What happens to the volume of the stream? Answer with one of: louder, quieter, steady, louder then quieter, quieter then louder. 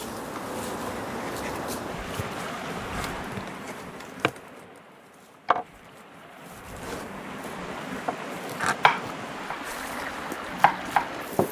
quieter then louder.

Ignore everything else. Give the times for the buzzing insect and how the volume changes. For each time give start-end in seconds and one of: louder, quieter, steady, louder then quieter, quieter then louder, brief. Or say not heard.
0.0-11.4 louder then quieter.